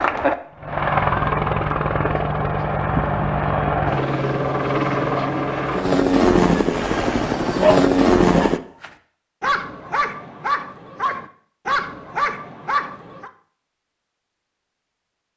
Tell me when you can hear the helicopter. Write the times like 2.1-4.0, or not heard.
0.0-8.6.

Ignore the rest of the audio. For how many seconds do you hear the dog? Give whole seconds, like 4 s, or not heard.
6 s.